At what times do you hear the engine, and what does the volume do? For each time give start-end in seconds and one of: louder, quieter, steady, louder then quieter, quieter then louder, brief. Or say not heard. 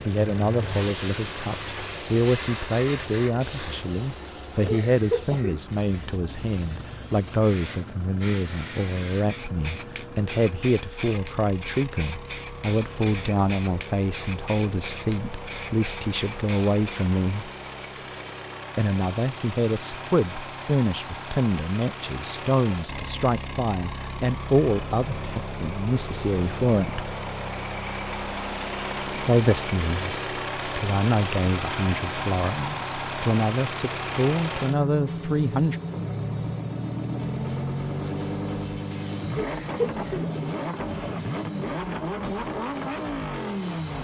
0.0-43.9 louder.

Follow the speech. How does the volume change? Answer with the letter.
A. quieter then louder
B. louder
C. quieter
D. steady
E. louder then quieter
D.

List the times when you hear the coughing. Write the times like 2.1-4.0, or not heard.
4.7-5.6, 39.4-40.3.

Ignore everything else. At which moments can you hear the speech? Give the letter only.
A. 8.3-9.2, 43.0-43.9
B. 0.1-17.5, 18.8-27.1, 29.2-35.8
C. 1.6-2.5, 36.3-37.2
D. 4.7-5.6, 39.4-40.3
B.